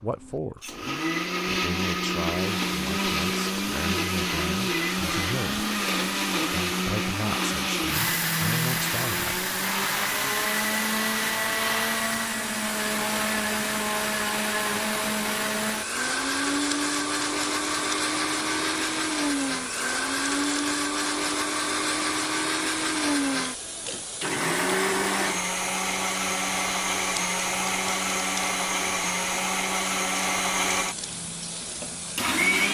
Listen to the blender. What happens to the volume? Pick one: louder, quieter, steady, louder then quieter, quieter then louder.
steady.